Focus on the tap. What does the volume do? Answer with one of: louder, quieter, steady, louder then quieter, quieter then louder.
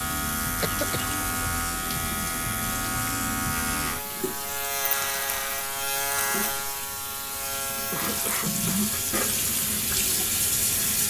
louder.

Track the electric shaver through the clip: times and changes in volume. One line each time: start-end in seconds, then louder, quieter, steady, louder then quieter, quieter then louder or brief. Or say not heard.
0.0-11.0 quieter.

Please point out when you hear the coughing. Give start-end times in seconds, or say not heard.
0.6-1.1, 7.9-8.9.